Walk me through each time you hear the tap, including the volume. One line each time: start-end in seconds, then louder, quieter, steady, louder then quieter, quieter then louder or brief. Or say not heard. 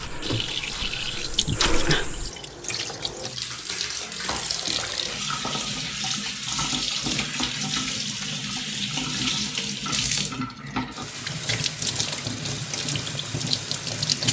0.0-14.2 steady.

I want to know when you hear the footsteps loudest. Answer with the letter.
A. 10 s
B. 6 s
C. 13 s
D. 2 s
D.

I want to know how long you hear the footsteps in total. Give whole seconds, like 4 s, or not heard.
2 s.